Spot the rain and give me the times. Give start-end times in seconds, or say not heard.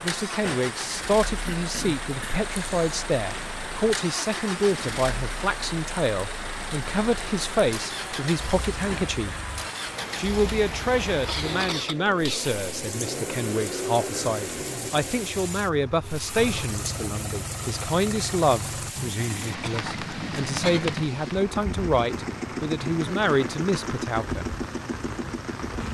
0.0-25.8.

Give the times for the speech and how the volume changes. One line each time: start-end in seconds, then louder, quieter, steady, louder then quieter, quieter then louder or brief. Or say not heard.
0.0-9.4 steady
10.2-24.6 steady.